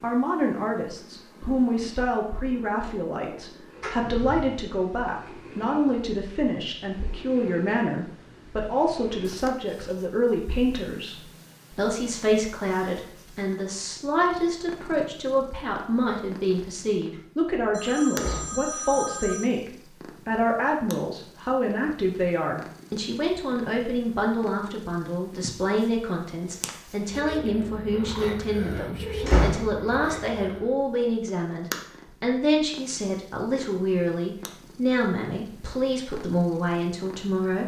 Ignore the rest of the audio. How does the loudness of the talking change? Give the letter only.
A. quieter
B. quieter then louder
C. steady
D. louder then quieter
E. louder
C.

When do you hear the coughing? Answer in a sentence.
The coughing can't be heard in this clip.